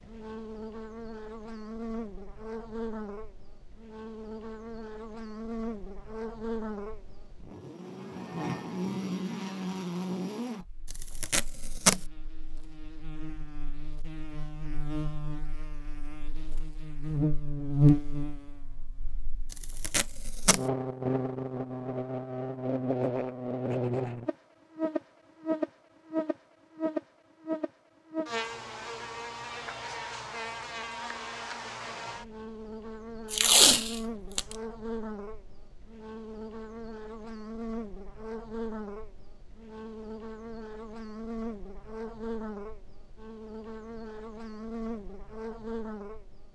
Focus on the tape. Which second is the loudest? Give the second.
34 s.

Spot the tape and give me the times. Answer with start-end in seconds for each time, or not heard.
10.9-12.0, 19.5-20.6, 33.3-34.5.